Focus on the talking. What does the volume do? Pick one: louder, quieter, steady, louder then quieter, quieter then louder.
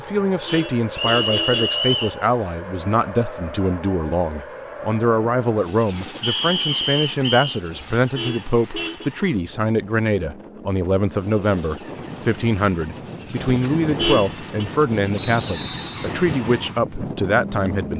steady.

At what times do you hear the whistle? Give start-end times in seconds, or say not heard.
0.9-2.1, 6.2-7.6, 15.2-16.1.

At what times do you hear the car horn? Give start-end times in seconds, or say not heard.
0.1-1.9, 7.8-9.1, 13.8-14.7.